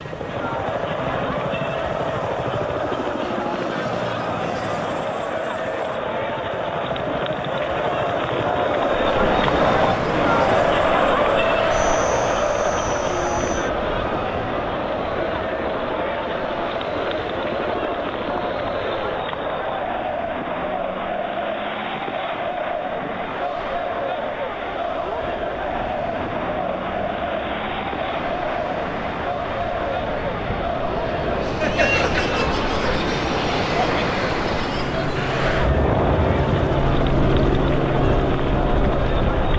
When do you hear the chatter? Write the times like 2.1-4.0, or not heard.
0.0-39.5.